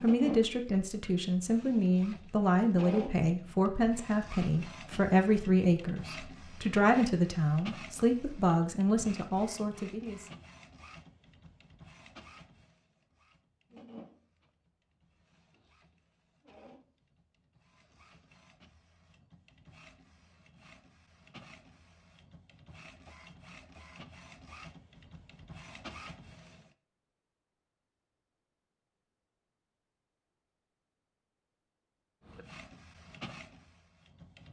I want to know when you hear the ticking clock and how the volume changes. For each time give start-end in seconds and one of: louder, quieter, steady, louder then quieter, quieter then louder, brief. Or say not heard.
not heard.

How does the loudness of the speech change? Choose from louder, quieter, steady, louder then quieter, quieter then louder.
steady.